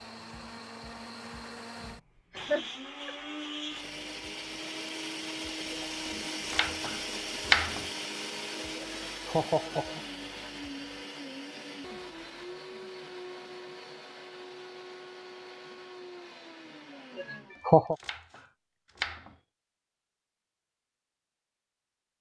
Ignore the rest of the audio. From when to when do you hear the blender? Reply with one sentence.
You can hear the blender from 0.0 to 17.6 s.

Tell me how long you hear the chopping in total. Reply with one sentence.
You can hear the chopping for 4 seconds altogether.